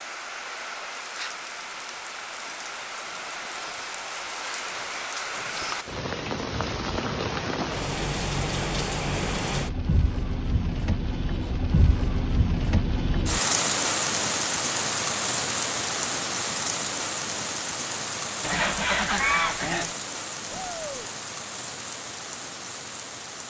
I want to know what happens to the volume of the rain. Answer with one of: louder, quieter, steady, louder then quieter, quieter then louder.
louder then quieter.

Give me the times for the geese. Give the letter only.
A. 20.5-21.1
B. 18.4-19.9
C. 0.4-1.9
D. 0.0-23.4
B.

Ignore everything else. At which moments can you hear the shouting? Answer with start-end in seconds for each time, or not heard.
20.5-21.1.